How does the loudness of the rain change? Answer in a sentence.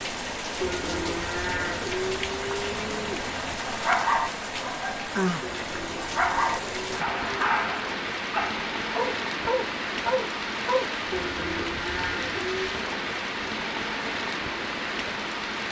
The loudness of the rain stays about the same.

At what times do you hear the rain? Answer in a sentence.
You can hear the rain from 0.0 to 15.6 s.